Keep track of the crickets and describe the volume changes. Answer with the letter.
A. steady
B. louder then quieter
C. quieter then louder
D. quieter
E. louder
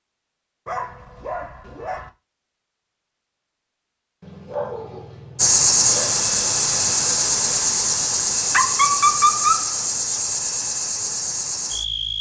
D.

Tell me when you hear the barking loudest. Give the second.
9 s.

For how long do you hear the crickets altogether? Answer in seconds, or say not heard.
7 s.